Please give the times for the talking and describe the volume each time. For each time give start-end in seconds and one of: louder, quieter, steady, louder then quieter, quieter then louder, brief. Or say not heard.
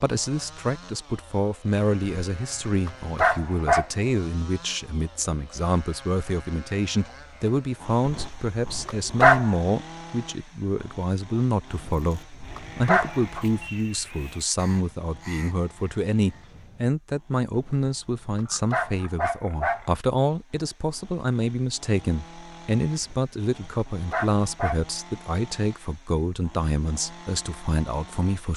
0.0-28.5 steady.